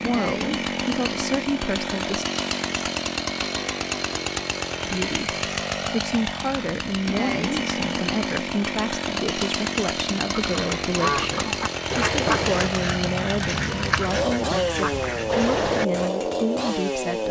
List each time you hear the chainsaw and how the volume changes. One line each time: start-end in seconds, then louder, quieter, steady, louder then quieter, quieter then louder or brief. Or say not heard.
0.0-17.2 steady.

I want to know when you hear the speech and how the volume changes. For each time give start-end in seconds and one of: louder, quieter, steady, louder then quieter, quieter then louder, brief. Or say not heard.
0.0-2.2 brief
4.8-17.2 steady.